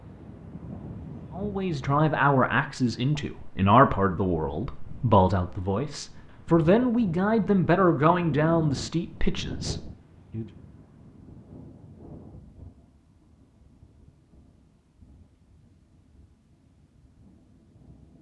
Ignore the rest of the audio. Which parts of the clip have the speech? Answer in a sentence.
You can hear the speech from 1.4 to 10.4 s.